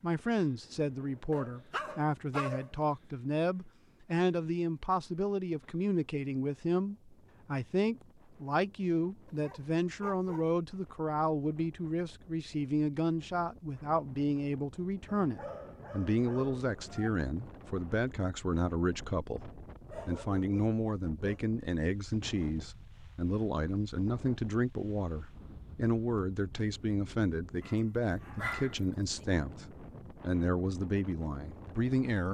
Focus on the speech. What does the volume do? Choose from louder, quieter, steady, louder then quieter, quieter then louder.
steady.